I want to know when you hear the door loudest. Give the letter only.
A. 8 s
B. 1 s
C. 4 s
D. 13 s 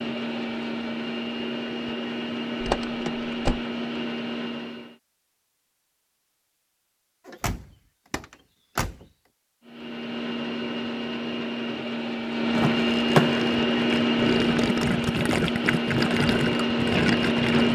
D.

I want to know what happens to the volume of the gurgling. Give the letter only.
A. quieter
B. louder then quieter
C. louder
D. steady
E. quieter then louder
C.